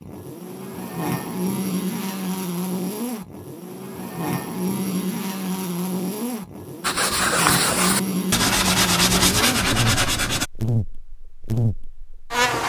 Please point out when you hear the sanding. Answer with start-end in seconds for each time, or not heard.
6.8-10.4.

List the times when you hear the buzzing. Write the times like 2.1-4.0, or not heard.
0.0-12.6.